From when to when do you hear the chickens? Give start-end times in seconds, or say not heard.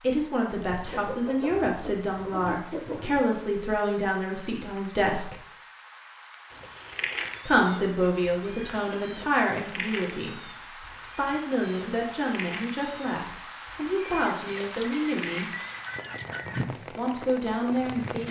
0.7-3.2, 13.9-16.7.